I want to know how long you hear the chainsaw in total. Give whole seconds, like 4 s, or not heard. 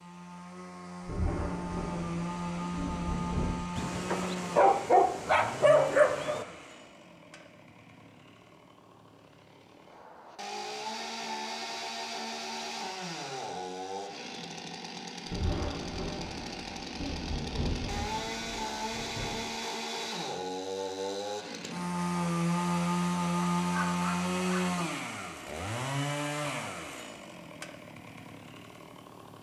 29 s.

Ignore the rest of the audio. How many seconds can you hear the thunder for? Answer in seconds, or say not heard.
7 s.